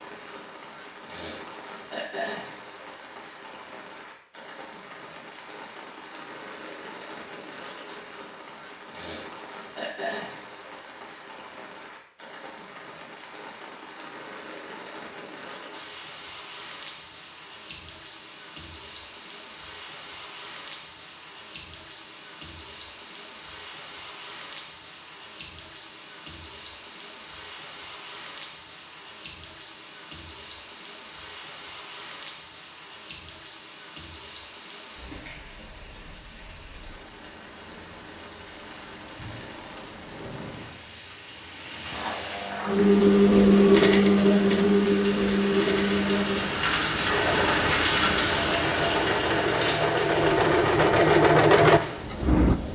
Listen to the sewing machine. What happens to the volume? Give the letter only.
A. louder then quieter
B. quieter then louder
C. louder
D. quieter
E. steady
B.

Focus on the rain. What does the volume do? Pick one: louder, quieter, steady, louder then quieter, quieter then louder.
louder.